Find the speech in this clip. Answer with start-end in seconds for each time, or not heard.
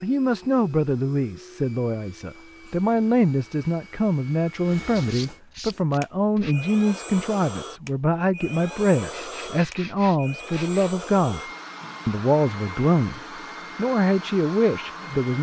0.0-11.4, 12.1-15.3.